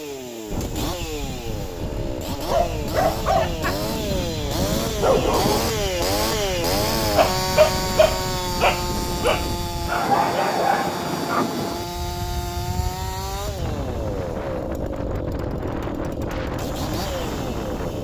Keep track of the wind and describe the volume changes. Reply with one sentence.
The loudness of the wind stays about the same.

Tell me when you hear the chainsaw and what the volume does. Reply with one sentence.
The chainsaw can be heard from 0.0 to 17.9 s, getting louder then quieter.